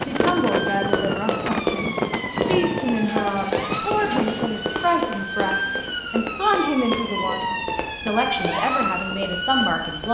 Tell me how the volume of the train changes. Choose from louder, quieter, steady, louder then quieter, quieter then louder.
quieter.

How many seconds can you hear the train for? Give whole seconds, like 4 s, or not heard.
10 s.